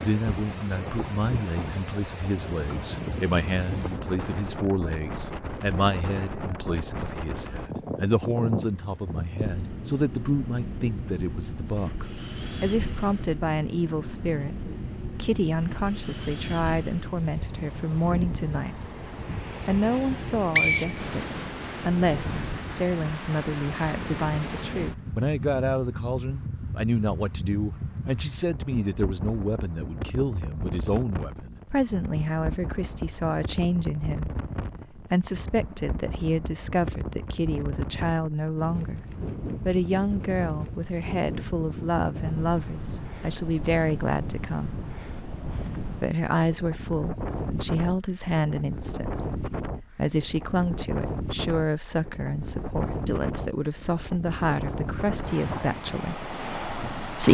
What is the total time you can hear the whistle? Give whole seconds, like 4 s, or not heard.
2 s.